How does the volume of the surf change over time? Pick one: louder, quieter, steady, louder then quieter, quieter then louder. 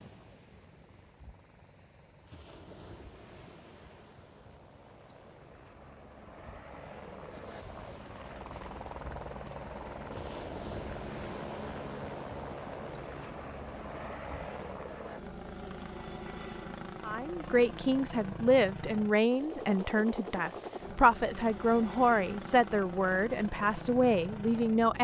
louder then quieter.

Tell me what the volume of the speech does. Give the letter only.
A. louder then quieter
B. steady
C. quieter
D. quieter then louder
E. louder
B.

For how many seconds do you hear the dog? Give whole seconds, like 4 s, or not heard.
not heard.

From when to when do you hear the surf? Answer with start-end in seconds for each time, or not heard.
0.0-15.1.